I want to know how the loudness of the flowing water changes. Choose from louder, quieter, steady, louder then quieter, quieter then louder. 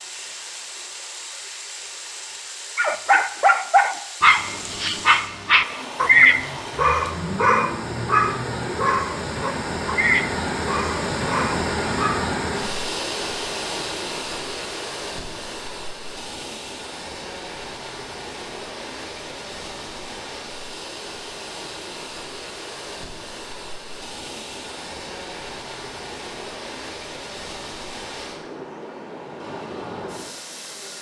louder then quieter.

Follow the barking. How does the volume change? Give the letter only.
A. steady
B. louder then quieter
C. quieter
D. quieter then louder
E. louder
C.